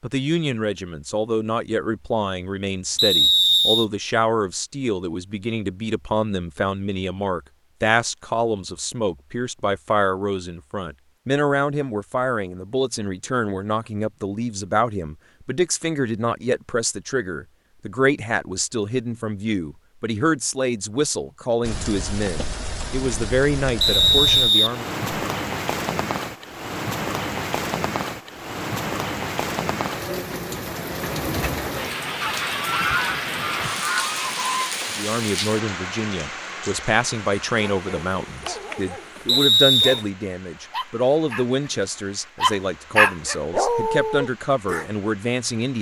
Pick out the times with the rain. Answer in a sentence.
You can hear the rain from 21.6 to 45.7 s.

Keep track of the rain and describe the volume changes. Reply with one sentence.
The volume of the rain goes down.